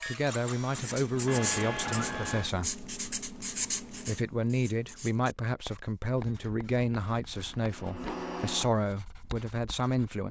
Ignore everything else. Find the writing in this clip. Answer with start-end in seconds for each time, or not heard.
0.8-10.1.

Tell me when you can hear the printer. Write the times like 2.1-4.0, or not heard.
0.0-2.5, 6.2-8.7.